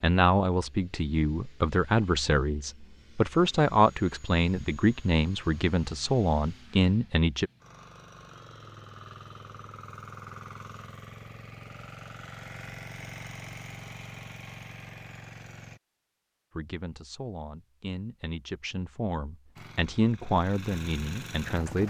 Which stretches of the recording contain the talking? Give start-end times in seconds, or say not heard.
0.0-7.5, 16.6-21.8.